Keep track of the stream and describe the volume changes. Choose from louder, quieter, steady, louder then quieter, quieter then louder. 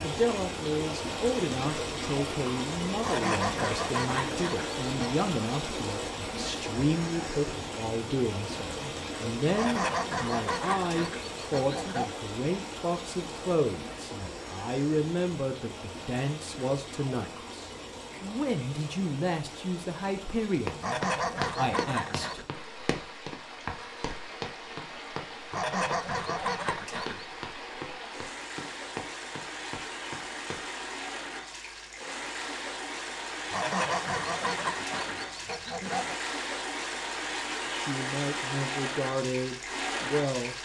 quieter then louder.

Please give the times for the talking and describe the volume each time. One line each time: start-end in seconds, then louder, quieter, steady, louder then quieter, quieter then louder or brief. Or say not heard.
0.0-20.9 steady
21.6-22.4 brief
37.6-40.5 brief.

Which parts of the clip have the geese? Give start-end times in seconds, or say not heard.
3.0-5.2, 9.6-12.2, 20.8-22.4, 25.5-27.2, 33.5-36.2.